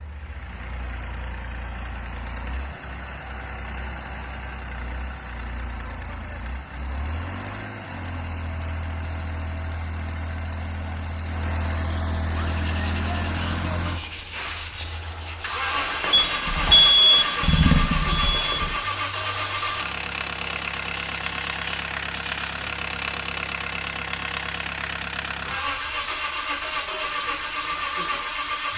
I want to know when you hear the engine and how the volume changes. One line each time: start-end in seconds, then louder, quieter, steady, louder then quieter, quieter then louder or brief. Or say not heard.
0.0-28.7 louder.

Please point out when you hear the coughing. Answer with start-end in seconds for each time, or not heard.
not heard.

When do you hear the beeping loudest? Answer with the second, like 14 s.
17 s.